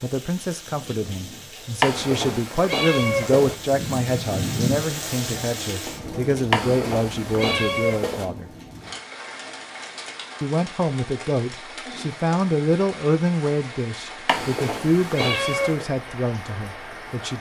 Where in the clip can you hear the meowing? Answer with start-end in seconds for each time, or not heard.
1.8-3.5, 6.5-8.2, 14.2-15.8.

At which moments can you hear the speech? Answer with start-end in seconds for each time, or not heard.
0.0-8.5, 10.4-17.3.